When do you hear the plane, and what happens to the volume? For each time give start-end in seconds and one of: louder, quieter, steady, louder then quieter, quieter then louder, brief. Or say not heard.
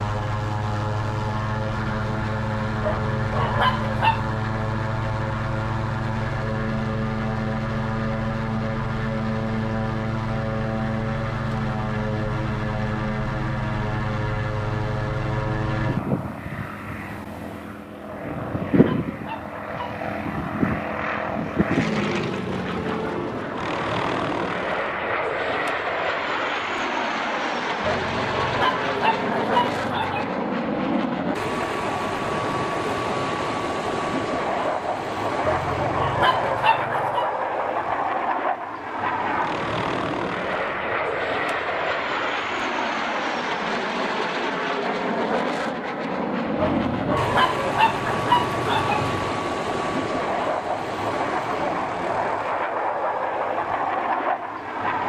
0.0-55.0 steady.